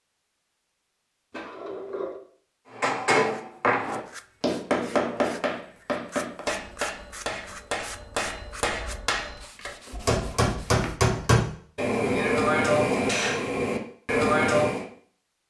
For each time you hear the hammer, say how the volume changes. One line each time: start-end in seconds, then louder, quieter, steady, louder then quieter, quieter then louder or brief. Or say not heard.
2.8-14.8 quieter then louder.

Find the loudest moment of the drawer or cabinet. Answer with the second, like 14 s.
2 s.